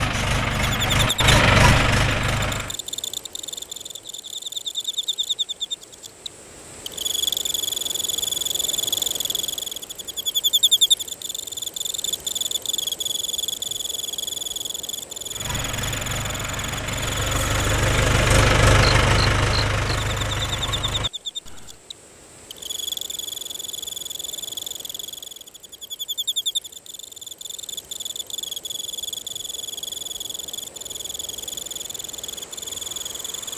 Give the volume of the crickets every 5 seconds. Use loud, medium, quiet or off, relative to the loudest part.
medium, loud, loud, medium, medium, medium, medium.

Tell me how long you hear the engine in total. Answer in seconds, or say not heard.
9 s.